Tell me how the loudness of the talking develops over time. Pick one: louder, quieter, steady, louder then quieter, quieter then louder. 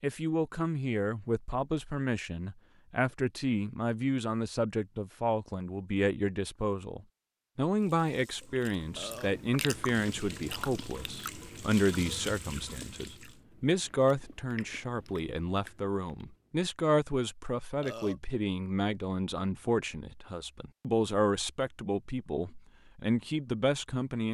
steady.